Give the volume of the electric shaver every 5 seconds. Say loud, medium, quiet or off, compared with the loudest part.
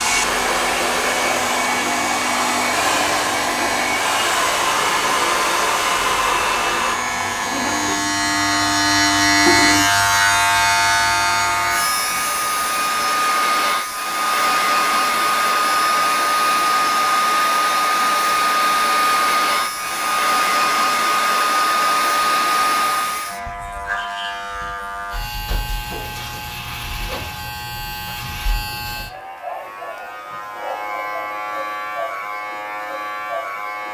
medium, loud, loud, quiet, medium, medium, medium.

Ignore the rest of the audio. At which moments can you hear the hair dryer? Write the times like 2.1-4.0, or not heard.
0.0-23.4.